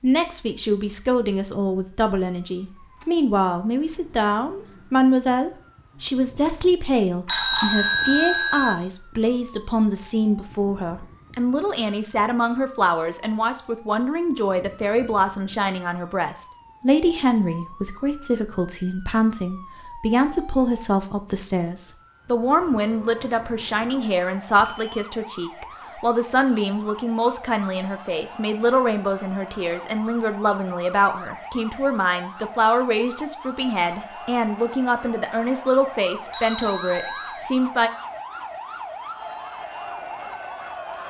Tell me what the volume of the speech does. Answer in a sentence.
The loudness of the speech stays about the same.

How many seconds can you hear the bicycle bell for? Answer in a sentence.
The bicycle bell can be heard for 3 seconds in total.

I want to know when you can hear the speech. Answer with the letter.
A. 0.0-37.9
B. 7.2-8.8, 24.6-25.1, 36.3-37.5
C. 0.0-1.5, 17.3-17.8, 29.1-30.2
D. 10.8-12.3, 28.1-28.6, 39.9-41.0
A.